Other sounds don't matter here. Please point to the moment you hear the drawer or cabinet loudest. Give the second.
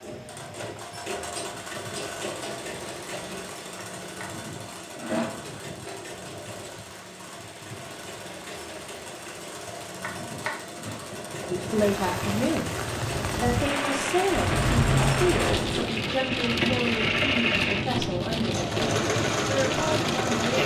15 s.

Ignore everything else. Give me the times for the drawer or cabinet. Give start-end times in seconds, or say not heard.
3.8-5.3, 10.0-10.9, 14.3-15.8.